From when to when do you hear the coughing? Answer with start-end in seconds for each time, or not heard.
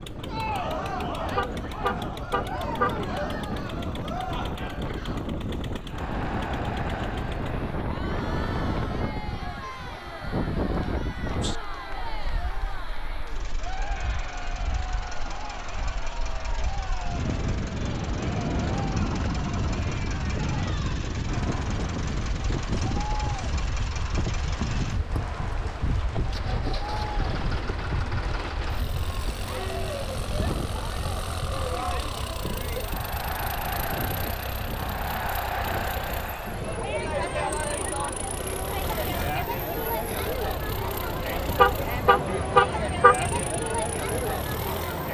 not heard.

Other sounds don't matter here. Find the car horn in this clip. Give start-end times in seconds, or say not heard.
1.2-3.0, 41.5-43.5.